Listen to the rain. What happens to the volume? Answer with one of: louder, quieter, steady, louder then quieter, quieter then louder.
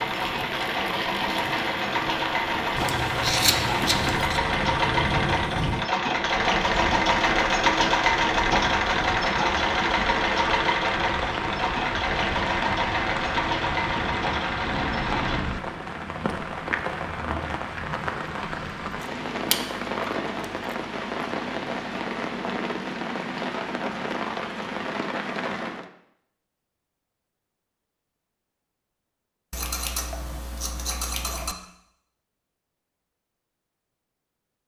steady.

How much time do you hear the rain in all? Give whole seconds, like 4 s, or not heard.
26 s.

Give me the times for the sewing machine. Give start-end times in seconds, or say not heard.
0.0-15.4.